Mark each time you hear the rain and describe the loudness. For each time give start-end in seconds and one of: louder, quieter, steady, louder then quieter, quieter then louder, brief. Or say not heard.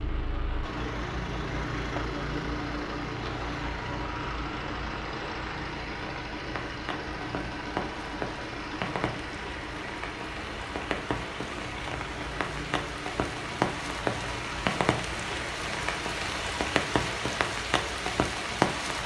0.0-19.0 louder.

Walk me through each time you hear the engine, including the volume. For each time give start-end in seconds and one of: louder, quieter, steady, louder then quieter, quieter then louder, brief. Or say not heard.
0.0-16.4 quieter.